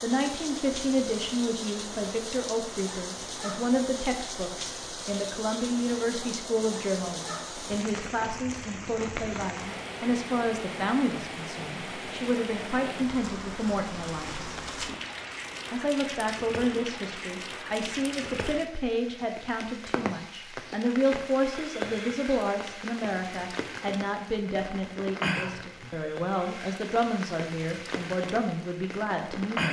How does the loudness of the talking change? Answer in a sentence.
The volume of the talking stays about the same.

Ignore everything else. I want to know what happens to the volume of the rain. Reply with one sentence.
The loudness of the rain stays about the same.